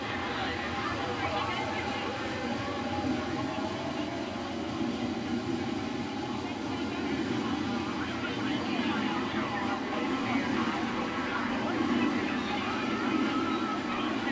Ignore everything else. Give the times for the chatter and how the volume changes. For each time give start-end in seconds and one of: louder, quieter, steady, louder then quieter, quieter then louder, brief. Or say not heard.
0.0-14.2 quieter then louder.